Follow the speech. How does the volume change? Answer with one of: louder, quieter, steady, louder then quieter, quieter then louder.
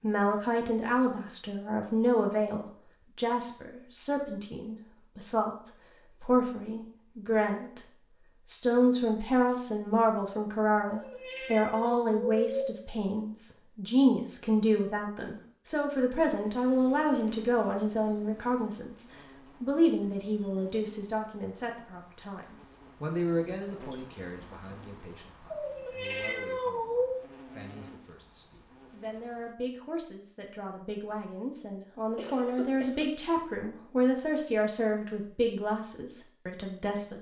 quieter then louder.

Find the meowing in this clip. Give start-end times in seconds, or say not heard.
10.8-12.7, 25.5-27.2.